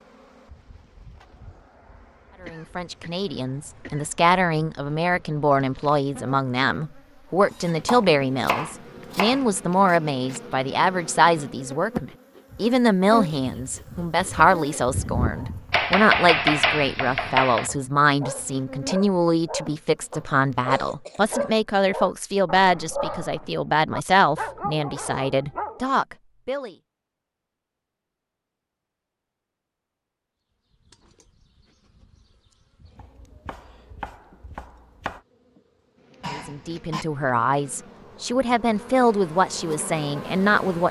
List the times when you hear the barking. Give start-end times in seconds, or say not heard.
15.2-25.9.